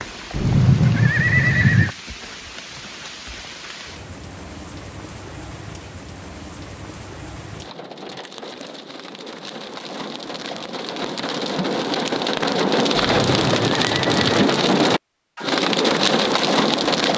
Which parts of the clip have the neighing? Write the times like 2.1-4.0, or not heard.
0.3-1.9, 12.9-14.5.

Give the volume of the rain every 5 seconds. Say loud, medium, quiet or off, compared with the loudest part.
quiet, quiet, loud, loud.